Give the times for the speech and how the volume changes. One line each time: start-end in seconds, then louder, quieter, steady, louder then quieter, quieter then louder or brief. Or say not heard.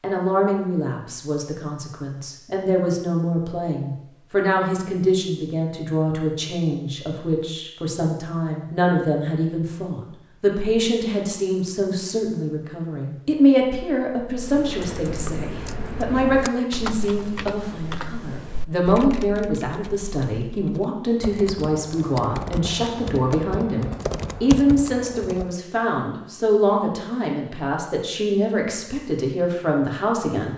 0.0-30.5 steady.